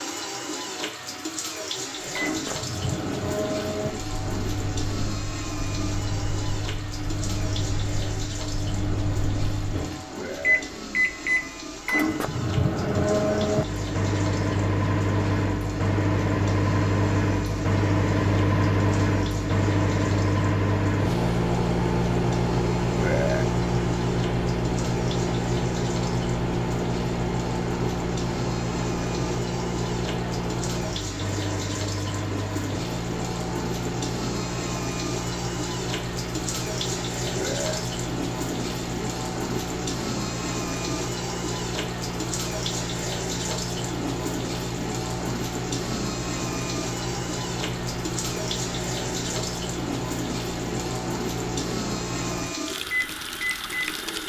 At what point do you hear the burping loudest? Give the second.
23 s.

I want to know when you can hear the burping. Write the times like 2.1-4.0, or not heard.
10.2-10.6, 22.9-23.4, 37.4-37.8.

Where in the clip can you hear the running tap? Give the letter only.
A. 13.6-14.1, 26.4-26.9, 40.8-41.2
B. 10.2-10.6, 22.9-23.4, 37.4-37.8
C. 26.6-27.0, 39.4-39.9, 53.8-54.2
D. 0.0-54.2
D.